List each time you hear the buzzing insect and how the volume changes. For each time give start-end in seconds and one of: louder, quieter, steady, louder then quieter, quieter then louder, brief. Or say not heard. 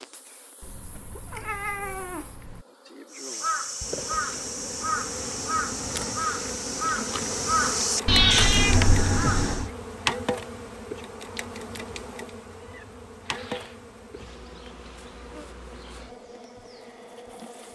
0.0-17.6 louder then quieter.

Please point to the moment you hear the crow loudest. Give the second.
8 s.